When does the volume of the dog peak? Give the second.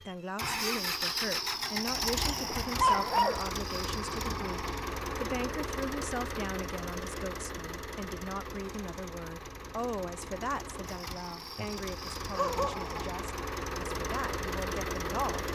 3 s.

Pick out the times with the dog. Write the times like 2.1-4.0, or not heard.
2.2-3.5, 11.6-13.1.